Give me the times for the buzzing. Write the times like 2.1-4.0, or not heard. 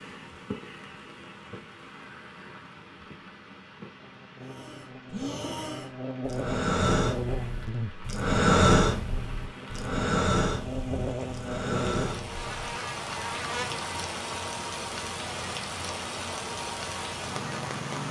4.0-18.0.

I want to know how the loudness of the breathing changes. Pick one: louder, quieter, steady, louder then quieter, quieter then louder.
louder then quieter.